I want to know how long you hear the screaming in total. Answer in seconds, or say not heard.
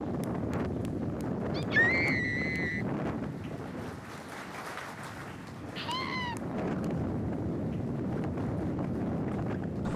2 s.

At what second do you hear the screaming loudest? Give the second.
2 s.